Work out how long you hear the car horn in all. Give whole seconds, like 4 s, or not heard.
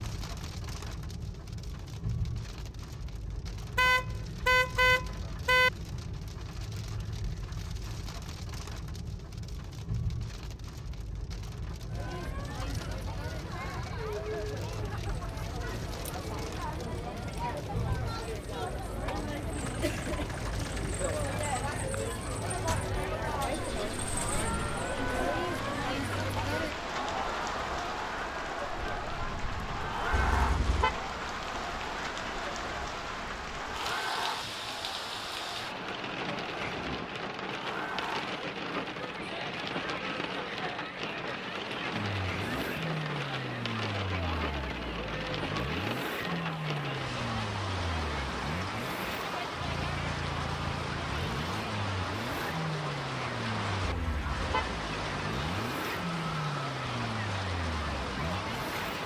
4 s.